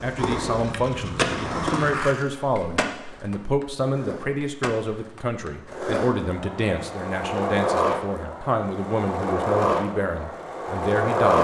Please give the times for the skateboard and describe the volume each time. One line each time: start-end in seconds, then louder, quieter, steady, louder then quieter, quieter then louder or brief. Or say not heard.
0.0-11.3 quieter then louder.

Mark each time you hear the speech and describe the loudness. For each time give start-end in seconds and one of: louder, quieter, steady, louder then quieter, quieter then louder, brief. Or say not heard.
0.0-11.3 steady.